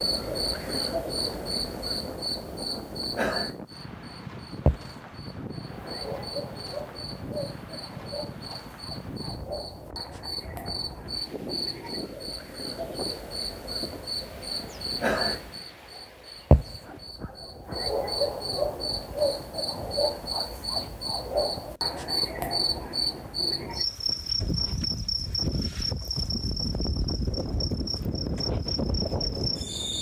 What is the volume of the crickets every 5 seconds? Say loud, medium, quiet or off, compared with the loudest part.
loud, medium, medium, loud, loud, loud.